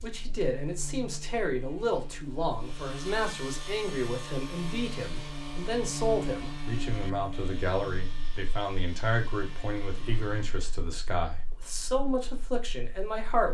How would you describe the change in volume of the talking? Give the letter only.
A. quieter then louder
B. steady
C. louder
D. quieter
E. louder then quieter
B.